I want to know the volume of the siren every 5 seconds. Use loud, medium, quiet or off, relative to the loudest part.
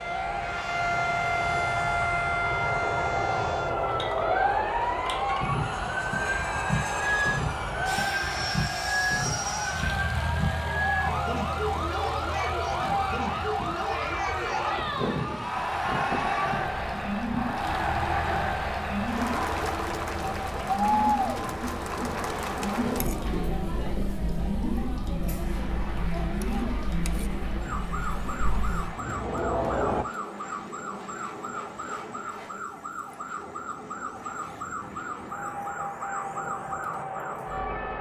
loud, loud, loud, medium, medium, medium, medium, medium.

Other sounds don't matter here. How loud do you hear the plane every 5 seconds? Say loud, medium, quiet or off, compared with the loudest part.
loud, loud, medium, medium, medium, medium, medium, loud.